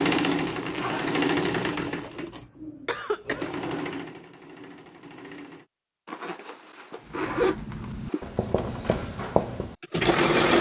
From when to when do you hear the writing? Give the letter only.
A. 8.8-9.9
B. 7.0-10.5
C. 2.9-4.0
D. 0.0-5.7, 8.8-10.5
B.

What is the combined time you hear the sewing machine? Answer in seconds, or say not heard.
7 s.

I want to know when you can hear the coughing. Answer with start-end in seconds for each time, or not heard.
2.9-4.0.